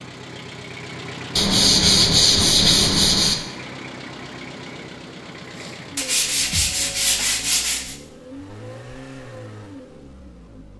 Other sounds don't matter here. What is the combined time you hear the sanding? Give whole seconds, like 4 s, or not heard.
4 s.